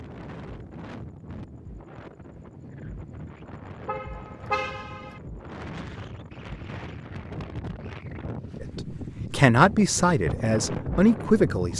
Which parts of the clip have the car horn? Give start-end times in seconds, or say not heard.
3.9-5.2.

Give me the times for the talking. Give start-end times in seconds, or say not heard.
8.6-11.7.